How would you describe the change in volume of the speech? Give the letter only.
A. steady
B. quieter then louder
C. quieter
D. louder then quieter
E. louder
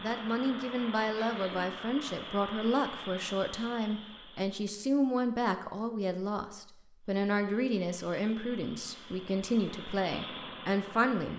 A.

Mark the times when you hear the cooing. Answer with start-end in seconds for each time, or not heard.
not heard.